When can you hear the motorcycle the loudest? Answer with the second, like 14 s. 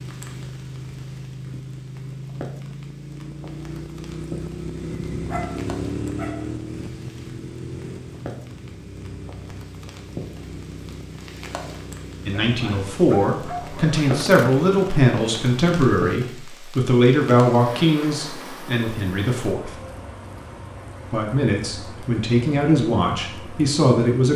6 s.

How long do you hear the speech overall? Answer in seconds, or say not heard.
11 s.